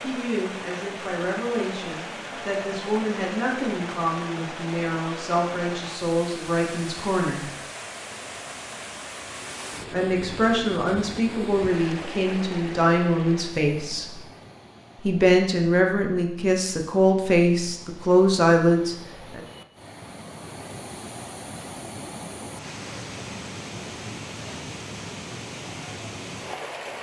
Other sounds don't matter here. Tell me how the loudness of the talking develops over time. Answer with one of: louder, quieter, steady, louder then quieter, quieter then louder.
louder.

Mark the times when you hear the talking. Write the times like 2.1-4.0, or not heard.
0.0-7.4, 9.9-14.2, 15.0-19.4.